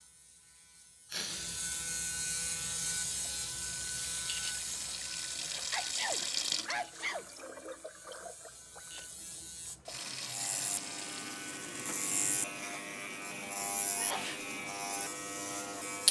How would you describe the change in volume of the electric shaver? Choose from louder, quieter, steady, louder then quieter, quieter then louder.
quieter then louder.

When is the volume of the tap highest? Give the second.
6 s.